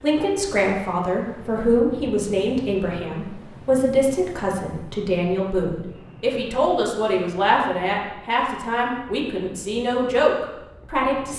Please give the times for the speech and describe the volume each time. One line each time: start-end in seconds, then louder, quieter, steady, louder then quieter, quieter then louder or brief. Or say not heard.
0.0-11.3 steady.